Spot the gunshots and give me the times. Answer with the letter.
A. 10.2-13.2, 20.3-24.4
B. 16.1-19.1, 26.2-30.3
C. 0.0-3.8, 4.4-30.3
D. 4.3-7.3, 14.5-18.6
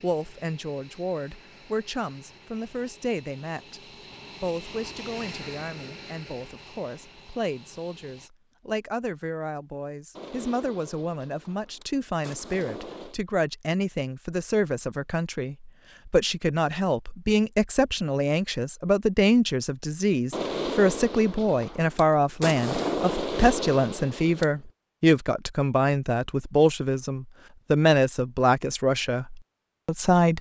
A.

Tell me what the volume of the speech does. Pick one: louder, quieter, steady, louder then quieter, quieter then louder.
louder.